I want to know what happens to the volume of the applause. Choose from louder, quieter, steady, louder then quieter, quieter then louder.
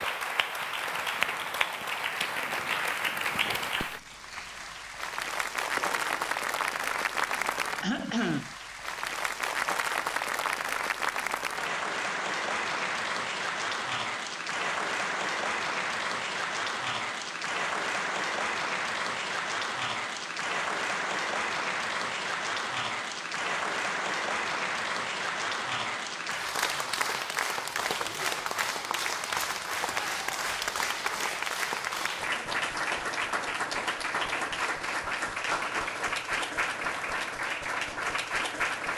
steady.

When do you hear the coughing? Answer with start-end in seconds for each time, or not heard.
7.8-8.6.